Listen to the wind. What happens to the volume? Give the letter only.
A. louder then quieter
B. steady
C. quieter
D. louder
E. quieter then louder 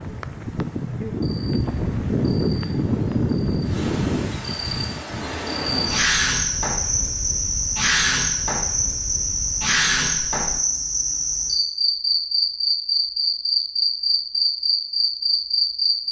C.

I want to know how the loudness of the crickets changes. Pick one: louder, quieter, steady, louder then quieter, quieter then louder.
louder.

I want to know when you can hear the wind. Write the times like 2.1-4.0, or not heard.
0.0-10.6.